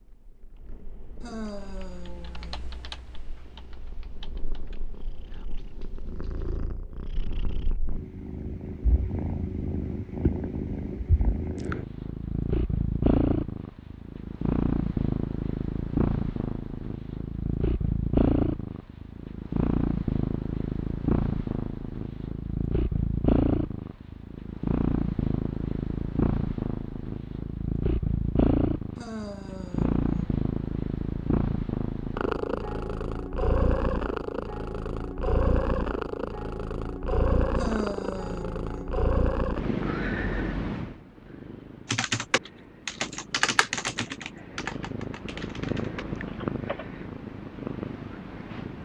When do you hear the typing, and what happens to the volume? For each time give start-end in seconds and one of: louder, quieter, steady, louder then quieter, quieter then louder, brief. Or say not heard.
1.6-6.6 quieter
41.9-46.9 quieter.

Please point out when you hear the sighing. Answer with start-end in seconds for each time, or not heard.
1.2-2.6, 28.9-30.4, 37.5-39.0.